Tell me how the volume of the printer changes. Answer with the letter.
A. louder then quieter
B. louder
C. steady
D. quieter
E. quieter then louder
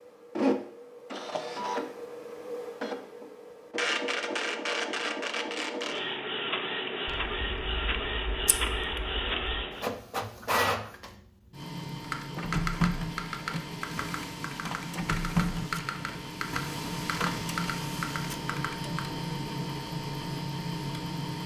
C.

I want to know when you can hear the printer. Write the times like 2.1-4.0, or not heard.
0.0-21.4.